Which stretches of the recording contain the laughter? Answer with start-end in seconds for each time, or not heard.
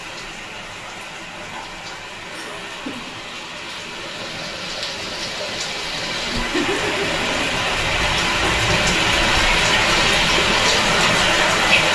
2.3-3.1, 6.2-7.5.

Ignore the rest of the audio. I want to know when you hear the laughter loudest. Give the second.
7 s.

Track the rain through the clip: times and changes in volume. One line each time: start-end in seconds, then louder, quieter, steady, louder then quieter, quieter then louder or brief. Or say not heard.
0.0-11.9 louder.